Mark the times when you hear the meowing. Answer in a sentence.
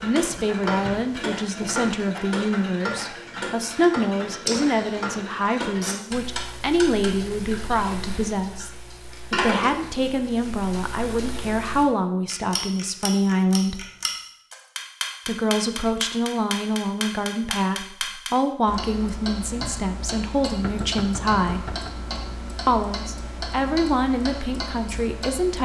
You can't hear the meowing here.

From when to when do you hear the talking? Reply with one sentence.
The talking can be heard from 0.0 to 8.7 s, from 9.3 to 13.8 s, from 15.2 to 21.8 s and from 22.6 to 25.6 s.